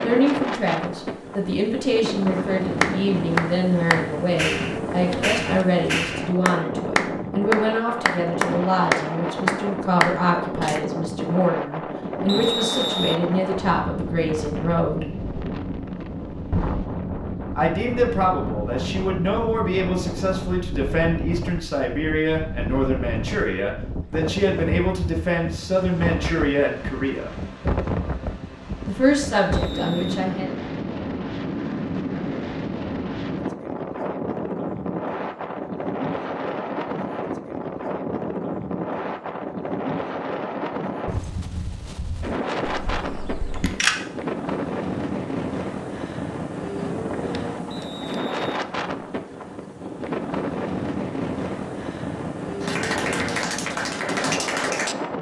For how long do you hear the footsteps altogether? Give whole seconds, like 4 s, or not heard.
not heard.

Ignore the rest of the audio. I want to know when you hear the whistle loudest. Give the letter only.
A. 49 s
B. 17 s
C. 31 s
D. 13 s
D.